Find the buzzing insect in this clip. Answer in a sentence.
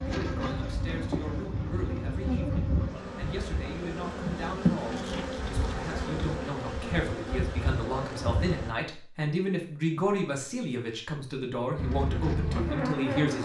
You can hear the buzzing insect from 0.0 to 8.8 s and from 11.8 to 13.4 s.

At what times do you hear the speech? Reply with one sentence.
You can hear the speech from 0.0 to 13.4 s.